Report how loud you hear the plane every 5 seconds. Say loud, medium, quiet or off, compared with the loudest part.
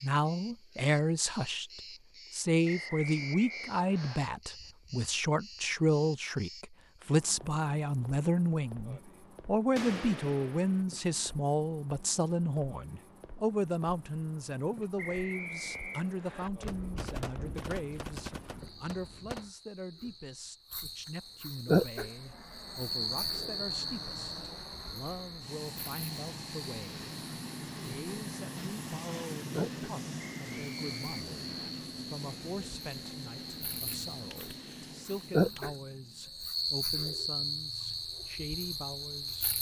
off, off, off, off, medium, loud, loud, quiet.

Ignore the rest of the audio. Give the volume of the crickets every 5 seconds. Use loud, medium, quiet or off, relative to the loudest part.
quiet, quiet, quiet, quiet, loud, medium, medium, loud.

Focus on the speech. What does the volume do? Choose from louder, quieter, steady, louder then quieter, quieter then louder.
quieter.